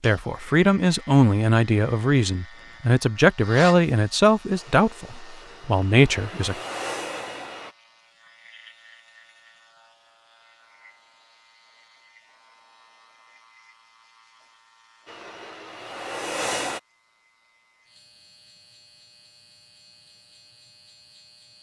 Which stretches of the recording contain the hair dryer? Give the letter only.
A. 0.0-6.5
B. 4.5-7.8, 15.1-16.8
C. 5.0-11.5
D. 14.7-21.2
B.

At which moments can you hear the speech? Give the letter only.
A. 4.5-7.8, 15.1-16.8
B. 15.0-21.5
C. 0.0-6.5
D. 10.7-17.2
C.